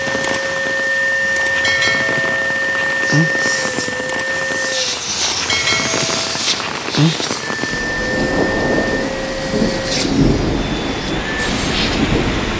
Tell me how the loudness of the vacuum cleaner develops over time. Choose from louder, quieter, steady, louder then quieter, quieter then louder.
quieter.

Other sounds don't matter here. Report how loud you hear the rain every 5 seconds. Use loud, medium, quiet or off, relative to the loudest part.
medium, loud, loud.